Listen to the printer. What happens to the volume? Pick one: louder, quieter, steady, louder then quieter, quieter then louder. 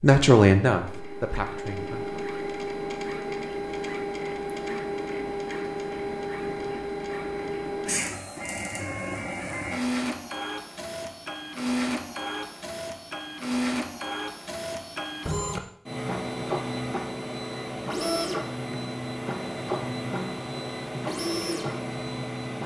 steady.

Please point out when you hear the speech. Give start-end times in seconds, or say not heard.
0.0-2.2.